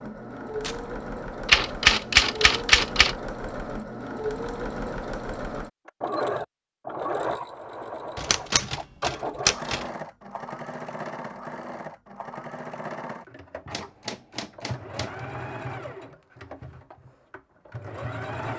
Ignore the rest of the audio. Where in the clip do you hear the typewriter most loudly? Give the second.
2 s.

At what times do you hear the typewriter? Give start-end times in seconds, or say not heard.
1.4-3.1, 8.2-9.8, 13.7-15.2.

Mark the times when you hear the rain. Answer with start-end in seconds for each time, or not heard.
not heard.